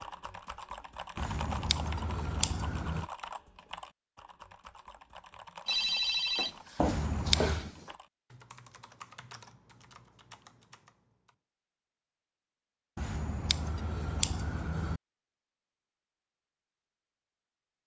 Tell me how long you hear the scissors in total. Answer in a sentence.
You can hear the scissors for 5 seconds altogether.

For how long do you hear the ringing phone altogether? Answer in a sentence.
You can hear the ringing phone for 2 seconds altogether.